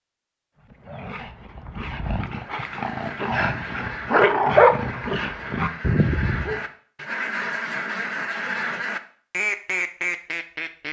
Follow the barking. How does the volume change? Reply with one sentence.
The loudness of the barking goes up, then down.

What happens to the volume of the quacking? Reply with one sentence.
The volume of the quacking goes up.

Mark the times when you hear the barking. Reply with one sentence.
You can hear the barking from 0.7 to 6.7 s.